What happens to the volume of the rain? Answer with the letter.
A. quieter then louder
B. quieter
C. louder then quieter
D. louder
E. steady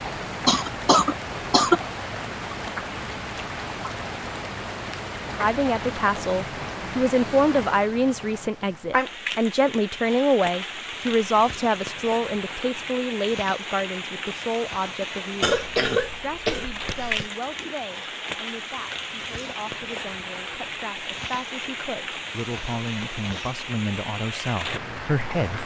E.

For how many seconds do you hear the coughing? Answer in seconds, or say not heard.
3 s.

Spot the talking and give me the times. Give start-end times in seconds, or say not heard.
5.3-25.6.